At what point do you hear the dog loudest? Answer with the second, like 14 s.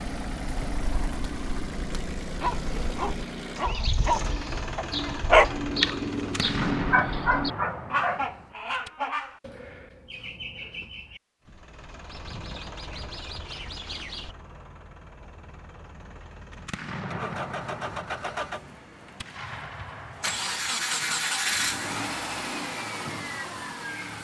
5 s.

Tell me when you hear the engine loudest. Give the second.
21 s.